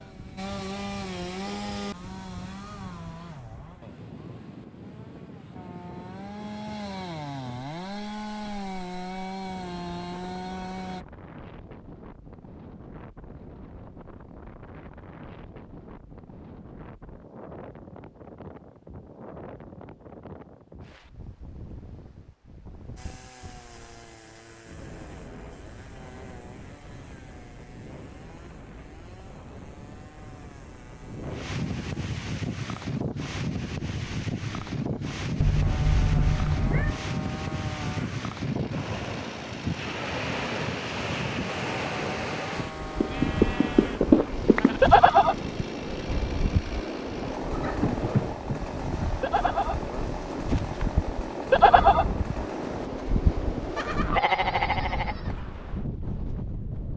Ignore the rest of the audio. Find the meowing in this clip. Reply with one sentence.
The meowing can be heard from 35.4 to 37.0 s.